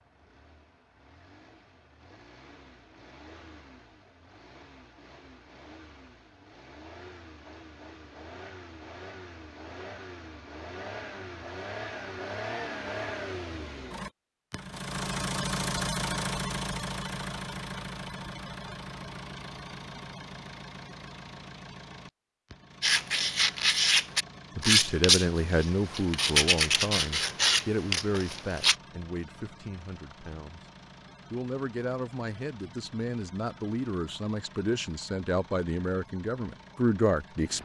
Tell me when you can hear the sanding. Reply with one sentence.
You can hear the sanding from 22.8 to 28.8 s.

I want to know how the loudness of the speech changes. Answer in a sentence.
The loudness of the speech goes down, then up.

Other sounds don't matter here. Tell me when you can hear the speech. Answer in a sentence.
The speech can be heard from 24.6 to 30.6 s and from 31.3 to 37.6 s.